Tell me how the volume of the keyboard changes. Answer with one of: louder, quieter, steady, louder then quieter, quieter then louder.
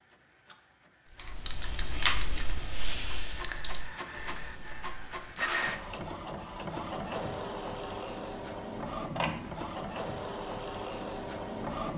quieter.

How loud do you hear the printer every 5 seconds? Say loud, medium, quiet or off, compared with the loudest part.
medium, loud, loud.